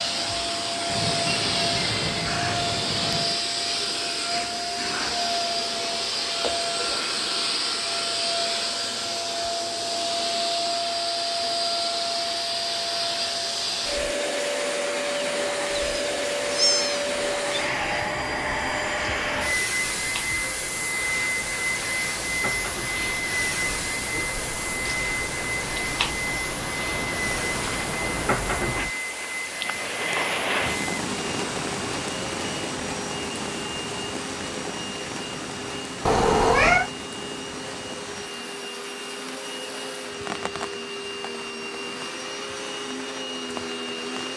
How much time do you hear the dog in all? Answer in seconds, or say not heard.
not heard.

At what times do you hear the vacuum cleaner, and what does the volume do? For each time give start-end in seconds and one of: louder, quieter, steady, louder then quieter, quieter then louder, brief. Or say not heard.
0.0-44.3 quieter.